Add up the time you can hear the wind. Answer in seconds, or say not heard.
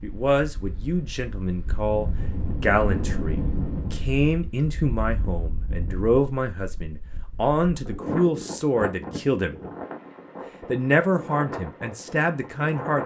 13 s.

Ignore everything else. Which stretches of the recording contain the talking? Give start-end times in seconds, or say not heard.
0.0-9.6, 10.7-13.0.